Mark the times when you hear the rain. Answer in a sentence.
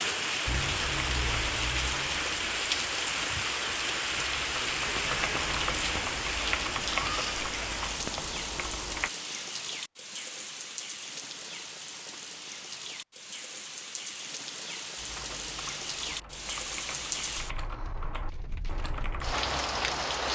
The rain can be heard from 0.0 to 20.3 s.